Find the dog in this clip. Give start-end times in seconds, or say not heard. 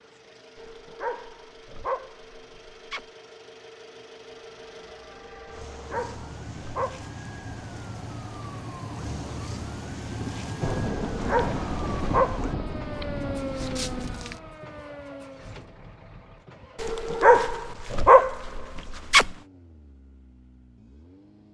0.6-3.0, 5.5-7.1, 11.1-12.4, 16.8-19.4.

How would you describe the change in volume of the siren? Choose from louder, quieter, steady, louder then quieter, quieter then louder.
louder.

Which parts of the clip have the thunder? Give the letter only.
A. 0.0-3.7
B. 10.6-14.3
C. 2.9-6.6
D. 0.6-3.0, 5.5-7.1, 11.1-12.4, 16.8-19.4
B.